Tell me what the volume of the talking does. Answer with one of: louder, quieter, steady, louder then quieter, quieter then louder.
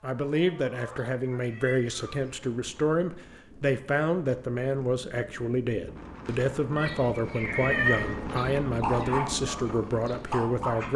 steady.